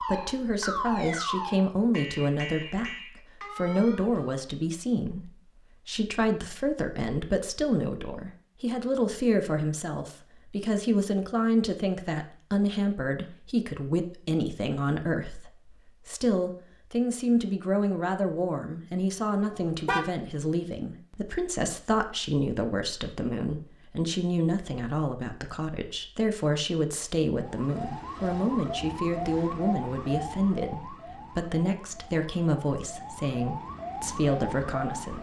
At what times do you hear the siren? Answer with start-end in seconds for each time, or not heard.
0.0-4.5, 27.3-35.1.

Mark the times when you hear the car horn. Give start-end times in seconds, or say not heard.
19.5-20.1.